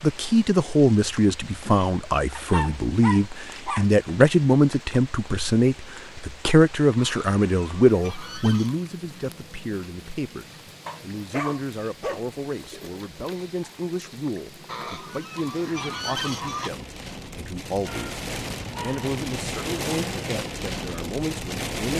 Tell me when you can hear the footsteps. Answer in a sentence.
You can't hear the footsteps here.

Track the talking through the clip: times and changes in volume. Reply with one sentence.
The talking can be heard from 0.0 to 21.9 s, getting quieter.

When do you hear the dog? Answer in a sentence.
You can hear the dog from 2.4 to 3.9 s, from 10.8 to 12.2 s and from 17.8 to 19.1 s.